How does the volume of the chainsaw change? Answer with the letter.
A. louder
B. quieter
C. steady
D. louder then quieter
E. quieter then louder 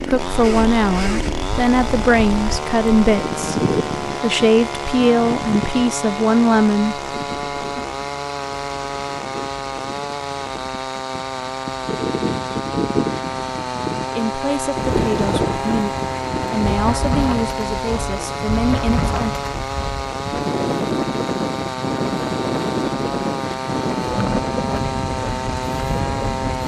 C.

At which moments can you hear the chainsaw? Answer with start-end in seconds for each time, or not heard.
0.0-26.6.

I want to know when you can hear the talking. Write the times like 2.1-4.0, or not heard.
0.1-7.0, 14.1-19.4.